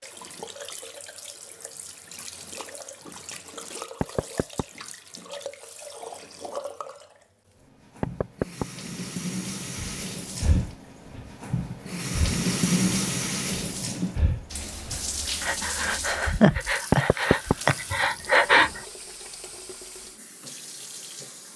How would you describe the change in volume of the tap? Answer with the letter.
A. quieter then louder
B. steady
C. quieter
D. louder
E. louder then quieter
E.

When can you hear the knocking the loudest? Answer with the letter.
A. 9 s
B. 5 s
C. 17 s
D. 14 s
C.